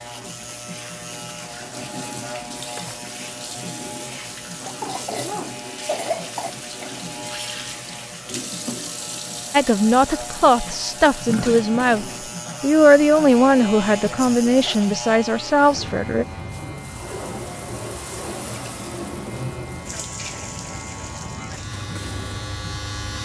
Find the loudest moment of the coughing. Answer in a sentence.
The volume of the coughing peaks at 6 seconds.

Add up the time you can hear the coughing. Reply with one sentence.
The coughing can be heard for 2 seconds in total.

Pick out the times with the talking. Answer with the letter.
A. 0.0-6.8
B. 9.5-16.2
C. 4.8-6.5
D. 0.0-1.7
B.